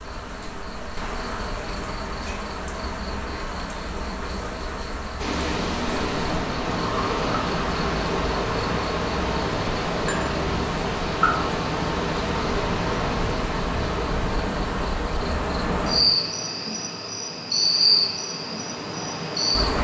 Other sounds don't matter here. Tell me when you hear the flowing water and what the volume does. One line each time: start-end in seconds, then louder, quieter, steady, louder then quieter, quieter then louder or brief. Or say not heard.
5.2-19.7 quieter.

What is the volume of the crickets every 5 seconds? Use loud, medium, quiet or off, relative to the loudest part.
medium, medium, medium, loud.